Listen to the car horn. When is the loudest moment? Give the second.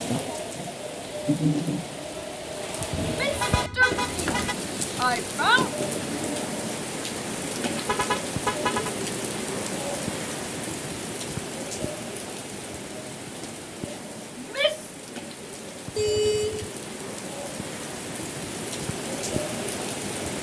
16 s.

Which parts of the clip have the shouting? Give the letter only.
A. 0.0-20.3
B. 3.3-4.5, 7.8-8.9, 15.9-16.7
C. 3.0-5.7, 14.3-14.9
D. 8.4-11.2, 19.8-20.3
C.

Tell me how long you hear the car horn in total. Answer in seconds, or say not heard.
3 s.